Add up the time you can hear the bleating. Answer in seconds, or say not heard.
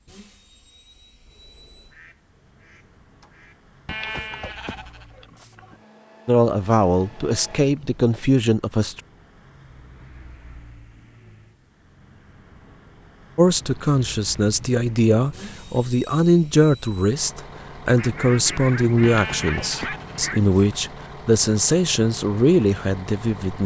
4 s.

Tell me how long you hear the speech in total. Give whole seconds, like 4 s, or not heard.
13 s.